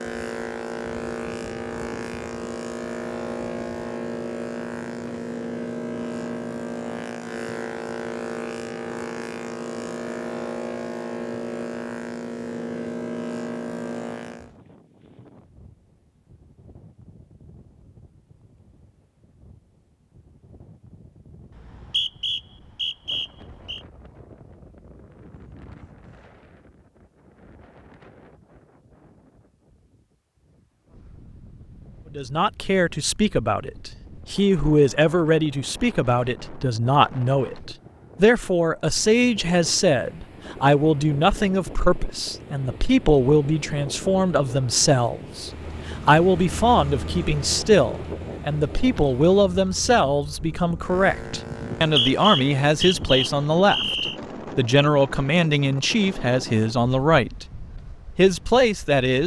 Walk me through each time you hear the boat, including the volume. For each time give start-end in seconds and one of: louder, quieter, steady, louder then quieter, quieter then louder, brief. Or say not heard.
0.0-14.6 steady
45.4-53.0 quieter then louder.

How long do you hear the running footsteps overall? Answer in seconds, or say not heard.
not heard.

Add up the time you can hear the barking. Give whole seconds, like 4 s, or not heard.
not heard.